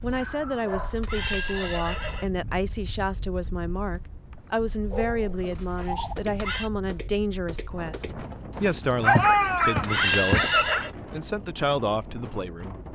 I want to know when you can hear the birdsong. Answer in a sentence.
The birdsong can't be heard in this clip.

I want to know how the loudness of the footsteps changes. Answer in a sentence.
The volume of the footsteps goes up.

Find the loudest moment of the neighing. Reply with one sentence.
The volume of the neighing peaks at 10 seconds.